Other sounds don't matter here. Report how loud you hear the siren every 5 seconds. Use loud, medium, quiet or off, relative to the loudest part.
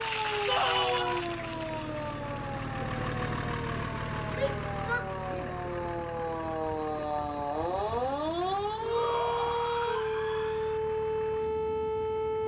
medium, loud, loud.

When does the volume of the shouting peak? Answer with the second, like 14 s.
1 s.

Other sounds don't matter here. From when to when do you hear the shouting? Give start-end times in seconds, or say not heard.
0.5-1.2, 4.3-5.5, 8.8-10.8.